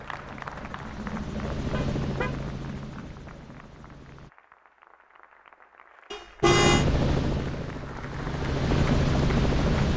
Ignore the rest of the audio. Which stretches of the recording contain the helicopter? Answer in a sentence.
The helicopter can be heard from 0.0 to 4.3 s and from 6.4 to 9.9 s.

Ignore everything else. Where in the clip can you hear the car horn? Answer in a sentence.
You can hear the car horn from 1.7 to 2.4 s and from 6.1 to 6.8 s.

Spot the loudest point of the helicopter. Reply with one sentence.
The loudest moment of the helicopter is at 9 seconds.